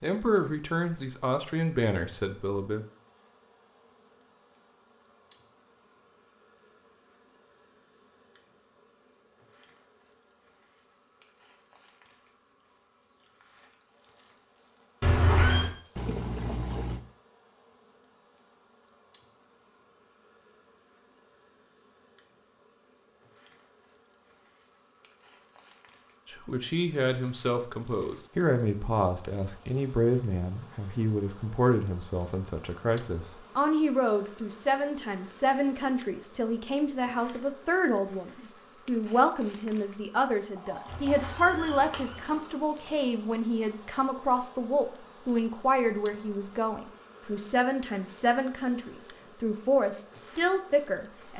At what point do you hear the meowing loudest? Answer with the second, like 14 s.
15 s.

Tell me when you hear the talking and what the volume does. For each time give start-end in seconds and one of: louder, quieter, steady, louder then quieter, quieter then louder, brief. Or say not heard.
0.0-2.8 brief
26.3-51.3 steady.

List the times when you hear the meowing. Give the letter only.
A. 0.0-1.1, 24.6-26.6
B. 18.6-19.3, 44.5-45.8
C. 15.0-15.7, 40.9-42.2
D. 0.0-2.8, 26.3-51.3
C.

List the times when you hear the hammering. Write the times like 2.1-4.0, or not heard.
not heard.